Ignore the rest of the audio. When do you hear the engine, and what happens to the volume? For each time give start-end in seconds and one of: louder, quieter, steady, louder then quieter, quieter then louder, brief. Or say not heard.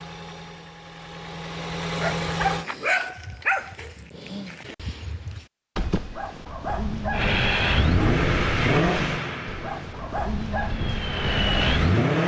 0.0-2.6 brief
7.1-12.2 quieter then louder.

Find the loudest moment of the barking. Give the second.
3 s.